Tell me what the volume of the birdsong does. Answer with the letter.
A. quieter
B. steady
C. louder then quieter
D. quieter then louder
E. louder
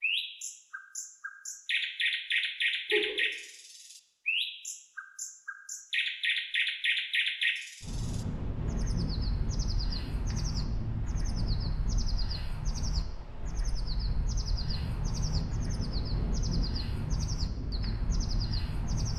A.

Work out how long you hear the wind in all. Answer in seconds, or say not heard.
11 s.